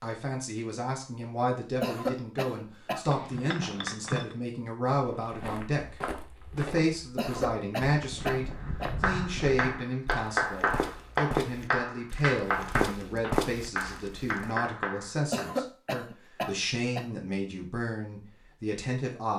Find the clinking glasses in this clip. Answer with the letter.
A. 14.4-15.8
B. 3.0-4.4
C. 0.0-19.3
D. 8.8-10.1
B.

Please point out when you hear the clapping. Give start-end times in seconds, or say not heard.
9.0-15.4.